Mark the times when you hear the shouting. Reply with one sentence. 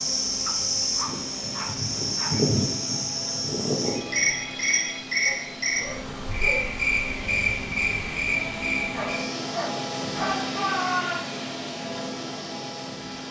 The shouting can be heard from 10.2 to 11.3 s.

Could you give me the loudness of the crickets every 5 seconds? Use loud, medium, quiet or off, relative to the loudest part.
loud, loud, quiet.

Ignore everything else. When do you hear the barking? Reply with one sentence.
You can hear the barking from 0.5 to 2.4 s, from 5.2 to 6.7 s and from 8.9 to 10.4 s.